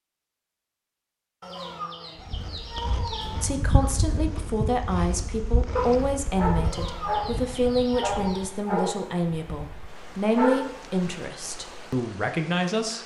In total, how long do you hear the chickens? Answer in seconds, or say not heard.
4 s.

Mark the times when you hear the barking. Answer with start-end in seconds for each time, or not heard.
5.8-12.0.